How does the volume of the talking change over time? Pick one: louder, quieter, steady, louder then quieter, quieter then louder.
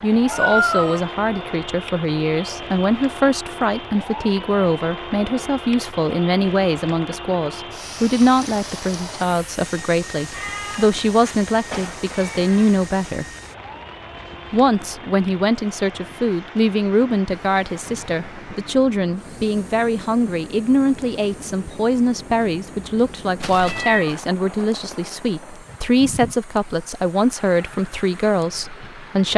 steady.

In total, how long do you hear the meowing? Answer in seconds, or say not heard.
4 s.